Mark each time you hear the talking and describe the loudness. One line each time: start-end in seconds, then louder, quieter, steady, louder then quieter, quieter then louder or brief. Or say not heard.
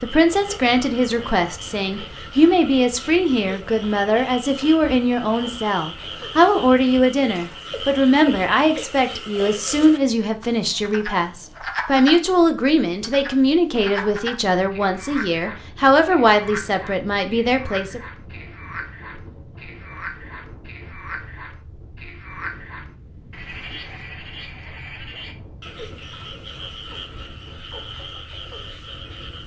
0.0-18.0 steady.